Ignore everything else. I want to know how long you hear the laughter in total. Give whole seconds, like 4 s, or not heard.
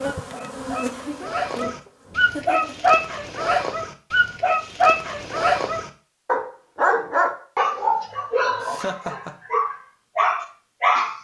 3 s.